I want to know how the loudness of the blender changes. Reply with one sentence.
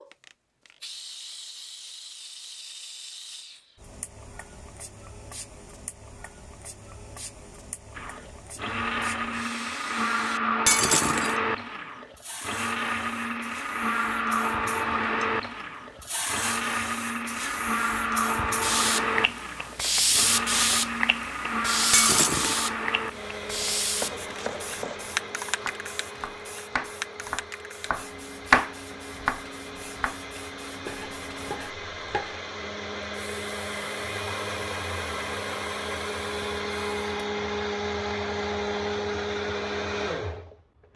The loudness of the blender goes down, then up.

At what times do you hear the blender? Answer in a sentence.
You can hear the blender from 8.0 to 40.9 s.